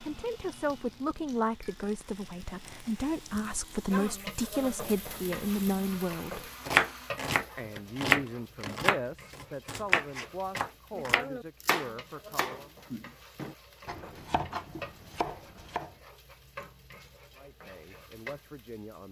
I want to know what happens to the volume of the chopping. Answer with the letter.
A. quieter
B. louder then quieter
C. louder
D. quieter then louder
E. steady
A.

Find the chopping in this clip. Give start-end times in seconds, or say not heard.
6.7-15.9.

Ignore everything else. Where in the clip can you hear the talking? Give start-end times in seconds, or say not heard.
0.0-6.5, 7.5-12.8, 17.4-19.0.